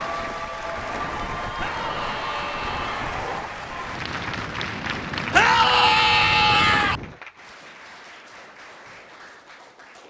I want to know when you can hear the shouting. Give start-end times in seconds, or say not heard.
1.6-3.1, 5.3-7.0.